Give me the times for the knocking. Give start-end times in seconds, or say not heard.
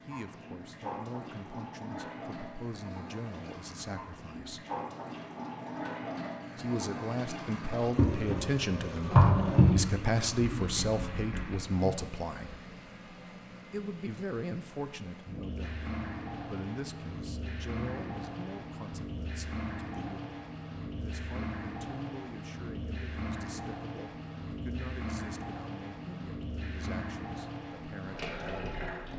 10.4-11.9.